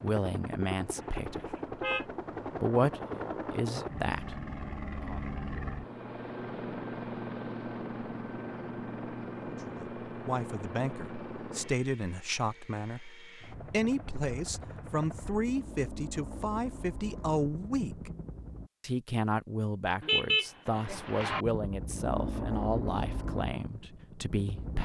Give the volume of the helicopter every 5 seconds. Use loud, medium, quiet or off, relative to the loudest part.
loud, loud, medium, medium, loud.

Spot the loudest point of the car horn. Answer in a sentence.
The loudest moment of the car horn is at 20 seconds.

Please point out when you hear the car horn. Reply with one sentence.
You can hear the car horn from 0.9 to 2.0 s and from 20.0 to 21.4 s.